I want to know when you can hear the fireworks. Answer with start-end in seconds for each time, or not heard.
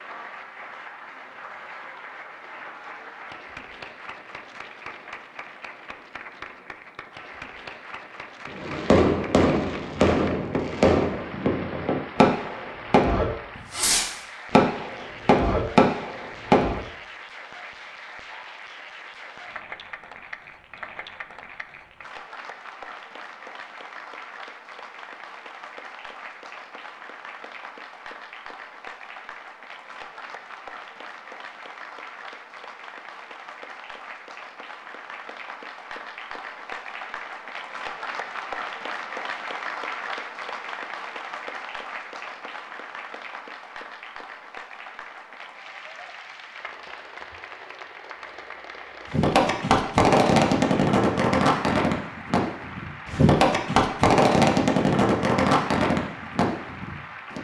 8.4-16.9, 49.1-57.3.